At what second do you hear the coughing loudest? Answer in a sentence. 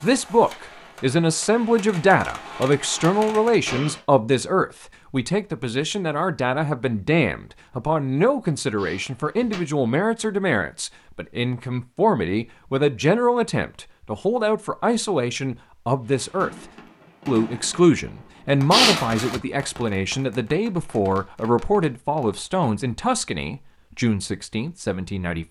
The volume of the coughing peaks at 19 seconds.